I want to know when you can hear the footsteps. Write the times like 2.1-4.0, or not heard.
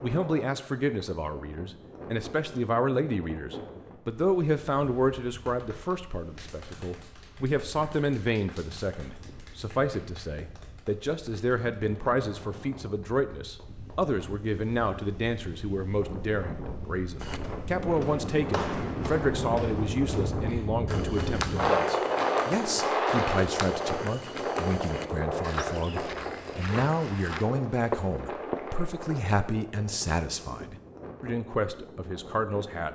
17.2-28.8.